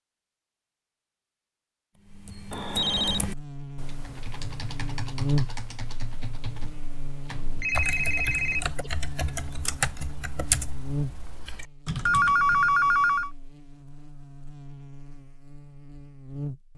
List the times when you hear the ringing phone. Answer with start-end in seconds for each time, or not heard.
2.5-3.3, 7.3-8.7, 12.1-13.3.